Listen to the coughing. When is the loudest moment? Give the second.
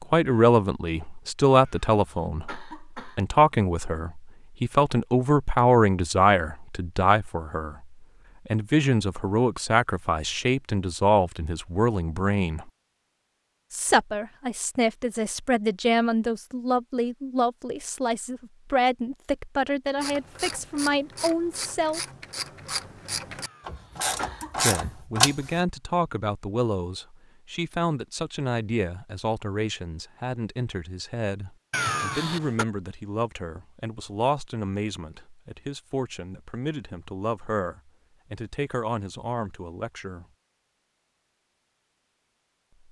32 s.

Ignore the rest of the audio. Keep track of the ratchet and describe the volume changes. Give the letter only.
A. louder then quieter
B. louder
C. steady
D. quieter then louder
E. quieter
B.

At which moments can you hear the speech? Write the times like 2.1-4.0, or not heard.
0.0-12.7, 13.7-22.0, 24.6-40.2.